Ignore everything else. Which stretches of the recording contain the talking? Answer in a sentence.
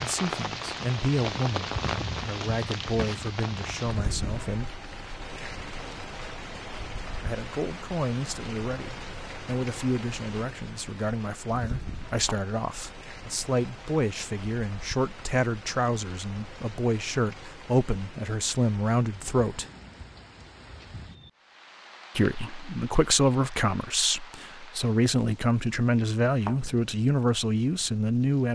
You can hear the talking from 0.0 to 4.8 s, from 7.2 to 19.6 s and from 22.1 to 28.5 s.